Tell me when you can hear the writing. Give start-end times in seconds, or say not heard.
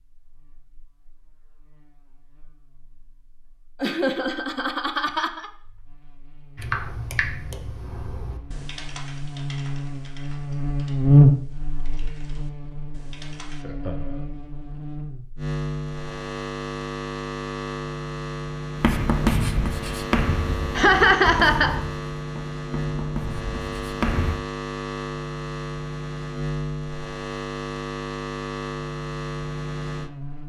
18.8-24.4.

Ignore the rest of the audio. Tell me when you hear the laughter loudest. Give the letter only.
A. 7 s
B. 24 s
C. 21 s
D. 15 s
C.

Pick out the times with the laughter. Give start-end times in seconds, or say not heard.
3.8-5.5, 13.6-14.2, 20.8-21.8.